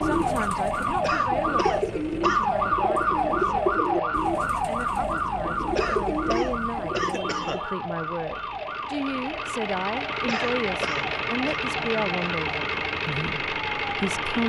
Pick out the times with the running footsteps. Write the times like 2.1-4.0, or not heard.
not heard.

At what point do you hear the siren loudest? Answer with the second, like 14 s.
3 s.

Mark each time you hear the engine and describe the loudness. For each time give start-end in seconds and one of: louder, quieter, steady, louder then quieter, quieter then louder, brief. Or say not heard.
0.1-14.4 louder.